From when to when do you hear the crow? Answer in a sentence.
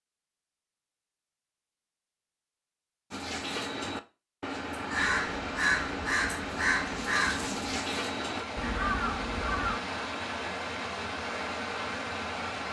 You can hear the crow from 3.1 to 9.8 s.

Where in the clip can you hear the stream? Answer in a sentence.
The stream can be heard from 4.9 to 12.6 s.